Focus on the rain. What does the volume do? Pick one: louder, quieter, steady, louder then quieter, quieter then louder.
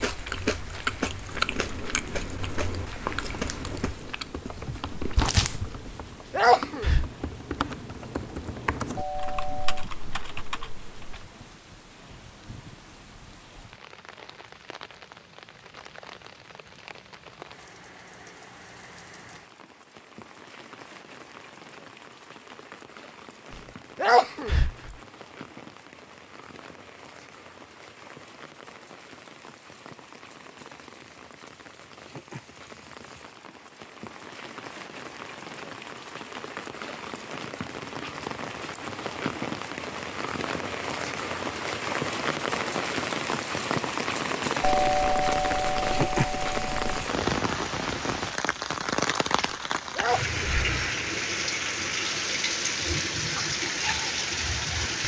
louder.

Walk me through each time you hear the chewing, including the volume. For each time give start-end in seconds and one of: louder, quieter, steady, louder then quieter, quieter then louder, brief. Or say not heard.
0.0-6.0 quieter then louder.